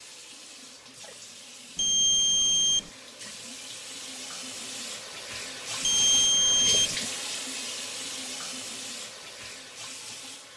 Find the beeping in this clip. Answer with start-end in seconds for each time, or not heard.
1.8-2.9, 5.8-7.0.